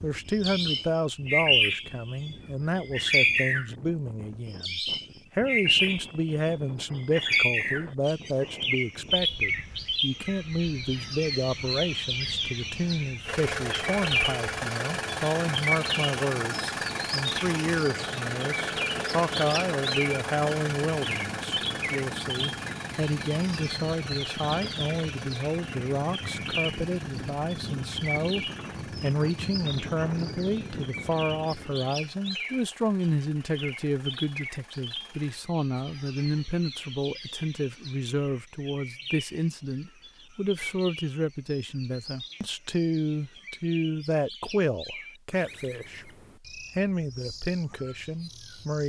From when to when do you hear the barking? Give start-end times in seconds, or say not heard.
not heard.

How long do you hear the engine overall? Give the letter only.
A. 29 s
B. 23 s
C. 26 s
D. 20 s
B.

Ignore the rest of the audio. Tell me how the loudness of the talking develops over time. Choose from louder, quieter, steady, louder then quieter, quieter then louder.
steady.